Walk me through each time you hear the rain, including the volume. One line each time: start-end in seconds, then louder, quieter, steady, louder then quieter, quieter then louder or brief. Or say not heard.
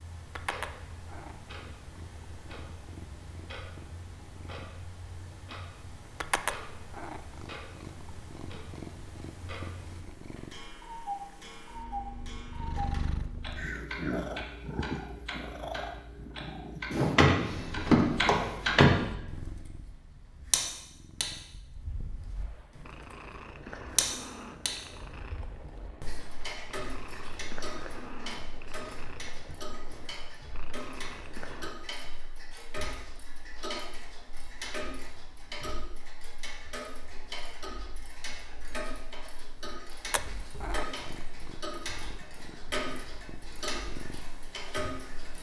not heard.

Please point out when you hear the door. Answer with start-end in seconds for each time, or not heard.
16.9-19.1.